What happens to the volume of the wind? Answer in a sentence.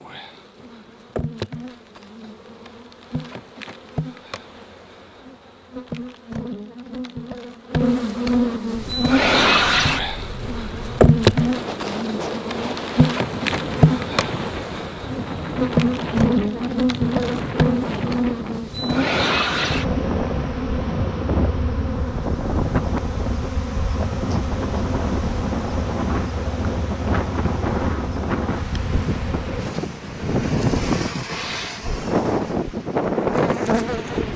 The loudness of the wind goes up.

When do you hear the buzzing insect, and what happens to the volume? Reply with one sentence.
The buzzing insect can be heard from 0.0 to 34.3 s, getting louder then quieter.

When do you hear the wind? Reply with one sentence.
The wind can be heard from 8.7 to 34.3 s.